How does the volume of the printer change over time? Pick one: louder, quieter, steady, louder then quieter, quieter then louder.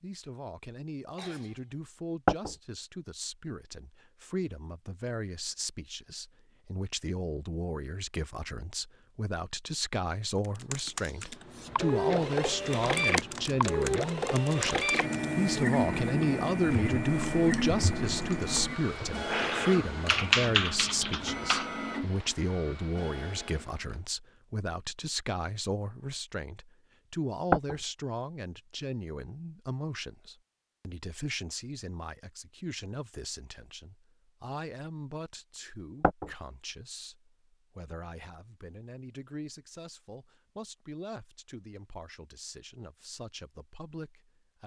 quieter.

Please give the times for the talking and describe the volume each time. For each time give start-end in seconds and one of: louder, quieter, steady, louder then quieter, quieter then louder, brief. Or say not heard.
0.0-44.6 louder then quieter.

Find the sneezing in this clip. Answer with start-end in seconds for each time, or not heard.
1.1-1.8.